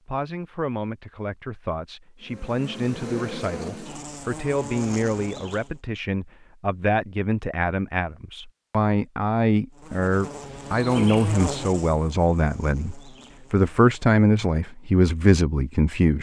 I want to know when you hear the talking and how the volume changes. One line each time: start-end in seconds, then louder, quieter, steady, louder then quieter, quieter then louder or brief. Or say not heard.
0.1-16.1 louder.